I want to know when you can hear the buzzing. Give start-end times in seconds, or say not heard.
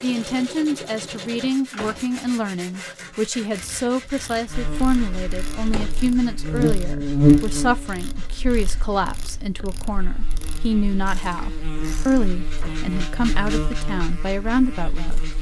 4.5-15.3.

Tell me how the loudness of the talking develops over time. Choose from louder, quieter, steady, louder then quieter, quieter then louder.
steady.